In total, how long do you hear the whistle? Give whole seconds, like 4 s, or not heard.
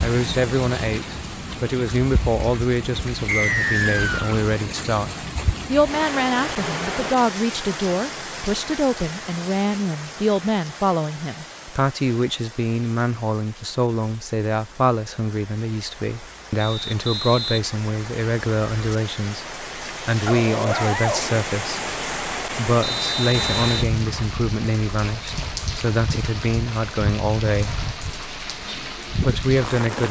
3 s.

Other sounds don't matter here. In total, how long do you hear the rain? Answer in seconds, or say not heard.
30 s.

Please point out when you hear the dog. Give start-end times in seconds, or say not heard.
20.2-21.4.